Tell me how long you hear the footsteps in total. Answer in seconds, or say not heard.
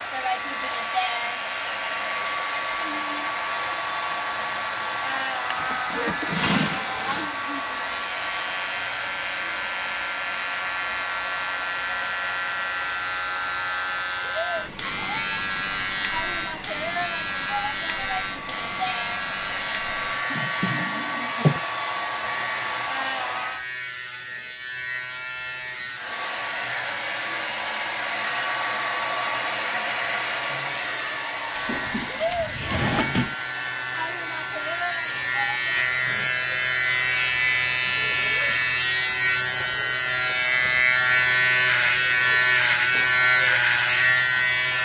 not heard.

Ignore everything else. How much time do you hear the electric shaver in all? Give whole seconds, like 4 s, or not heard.
45 s.